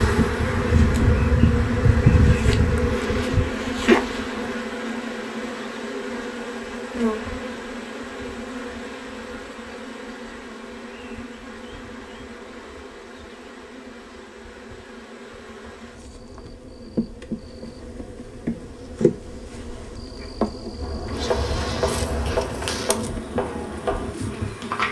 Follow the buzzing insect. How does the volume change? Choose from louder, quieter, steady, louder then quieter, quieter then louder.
quieter then louder.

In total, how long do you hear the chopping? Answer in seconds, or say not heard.
4 s.